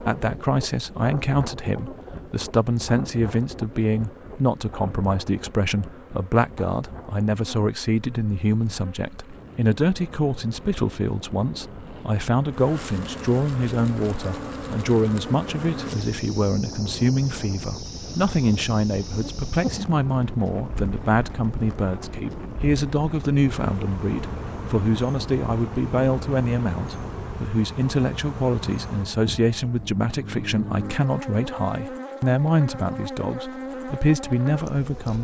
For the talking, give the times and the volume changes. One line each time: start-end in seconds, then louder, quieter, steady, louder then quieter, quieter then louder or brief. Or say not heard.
0.1-35.1 steady.